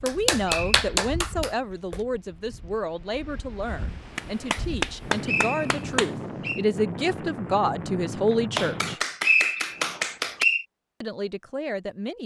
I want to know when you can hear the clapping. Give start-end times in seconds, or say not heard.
0.1-1.9, 4.2-6.1, 8.6-10.4.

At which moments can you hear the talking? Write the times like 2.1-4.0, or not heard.
0.0-9.0, 11.0-12.2.